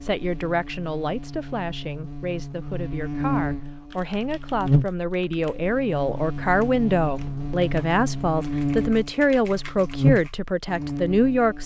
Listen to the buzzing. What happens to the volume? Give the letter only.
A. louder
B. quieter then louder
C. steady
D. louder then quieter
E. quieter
A.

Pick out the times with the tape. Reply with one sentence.
The tape can't be heard in this clip.